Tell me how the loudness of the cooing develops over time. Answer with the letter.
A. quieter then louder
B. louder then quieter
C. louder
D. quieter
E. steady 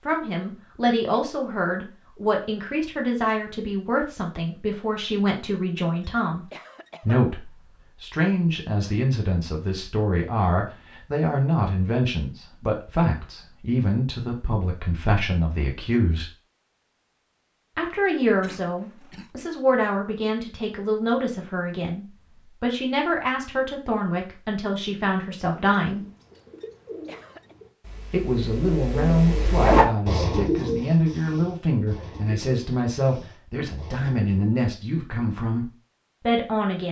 B.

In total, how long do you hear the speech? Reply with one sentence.
You can hear the speech for 33 seconds altogether.